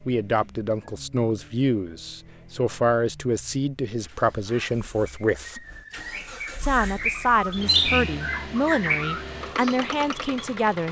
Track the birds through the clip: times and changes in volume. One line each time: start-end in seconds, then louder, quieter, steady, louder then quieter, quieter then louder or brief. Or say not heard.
4.0-10.4 louder.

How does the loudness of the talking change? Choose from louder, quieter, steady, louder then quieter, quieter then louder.
steady.